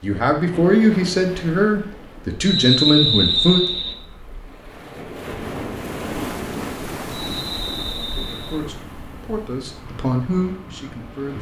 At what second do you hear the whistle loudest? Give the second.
3 s.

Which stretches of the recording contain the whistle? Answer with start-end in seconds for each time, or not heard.
2.5-4.0, 7.1-8.6.